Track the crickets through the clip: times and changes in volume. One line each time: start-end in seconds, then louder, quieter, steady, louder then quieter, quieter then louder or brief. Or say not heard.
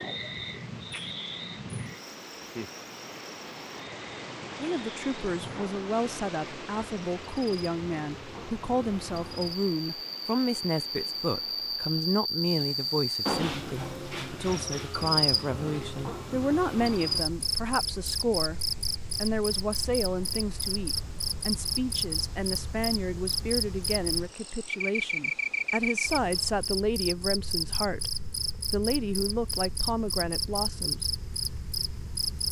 0.0-32.4 louder.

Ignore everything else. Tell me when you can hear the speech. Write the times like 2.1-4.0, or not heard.
4.5-31.0.